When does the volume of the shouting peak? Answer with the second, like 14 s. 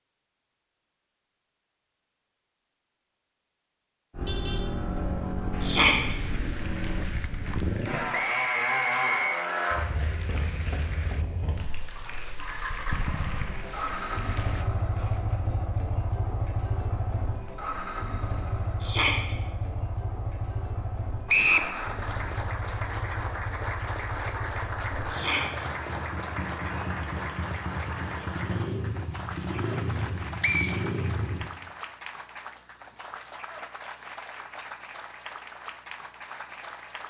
6 s.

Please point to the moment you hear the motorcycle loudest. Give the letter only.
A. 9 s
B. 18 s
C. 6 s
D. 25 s
A.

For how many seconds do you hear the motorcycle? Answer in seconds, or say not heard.
27 s.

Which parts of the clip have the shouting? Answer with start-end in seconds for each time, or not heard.
5.6-6.0, 18.8-19.2, 25.1-25.6.